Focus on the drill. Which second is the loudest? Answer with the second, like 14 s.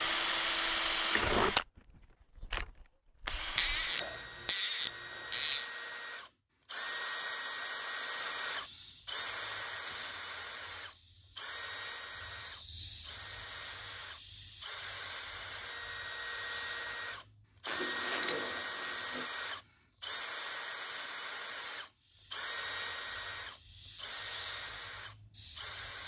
1 s.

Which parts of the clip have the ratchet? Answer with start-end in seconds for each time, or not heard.
3.5-5.7, 17.6-19.2.